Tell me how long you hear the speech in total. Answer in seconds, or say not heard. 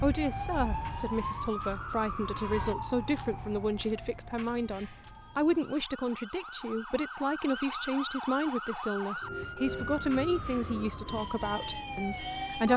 13 s.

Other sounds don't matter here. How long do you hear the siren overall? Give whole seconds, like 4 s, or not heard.
13 s.